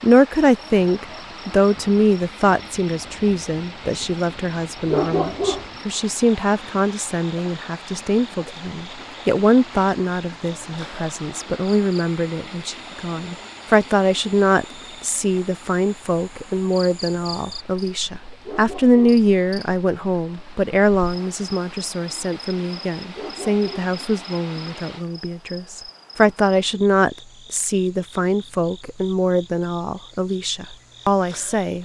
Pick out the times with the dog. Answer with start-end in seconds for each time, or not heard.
4.8-5.7, 18.4-19.2, 23.1-23.9.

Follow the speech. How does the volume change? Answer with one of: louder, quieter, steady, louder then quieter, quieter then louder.
steady.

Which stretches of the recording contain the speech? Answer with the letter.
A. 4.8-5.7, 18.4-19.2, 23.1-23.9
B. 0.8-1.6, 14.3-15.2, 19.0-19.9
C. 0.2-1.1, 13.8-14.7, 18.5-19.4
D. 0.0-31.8
D.